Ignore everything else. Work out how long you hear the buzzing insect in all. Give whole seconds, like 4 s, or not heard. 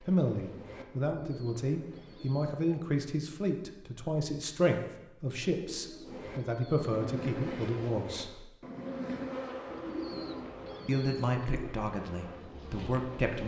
10 s.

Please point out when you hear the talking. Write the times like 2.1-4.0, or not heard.
0.0-8.4, 10.8-13.4.